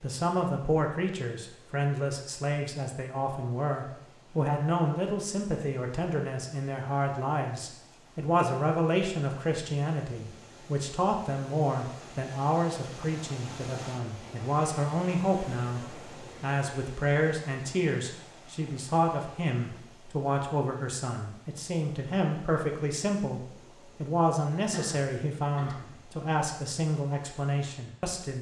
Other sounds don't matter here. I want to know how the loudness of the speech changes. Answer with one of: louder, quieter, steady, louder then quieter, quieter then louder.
steady.